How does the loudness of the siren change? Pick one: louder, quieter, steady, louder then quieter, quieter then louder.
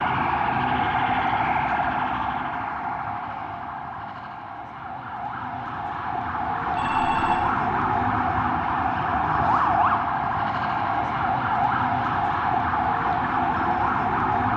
quieter then louder.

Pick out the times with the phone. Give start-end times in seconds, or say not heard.
6.6-7.4.